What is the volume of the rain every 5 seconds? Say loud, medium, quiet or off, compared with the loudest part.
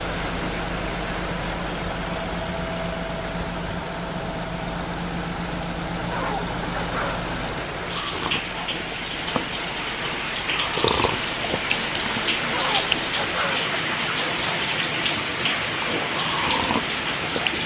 medium, medium, loud, loud.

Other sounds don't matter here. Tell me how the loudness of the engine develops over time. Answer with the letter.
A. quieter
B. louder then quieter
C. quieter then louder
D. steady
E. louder
A.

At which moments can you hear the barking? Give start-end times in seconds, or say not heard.
6.1-7.2, 12.5-13.6.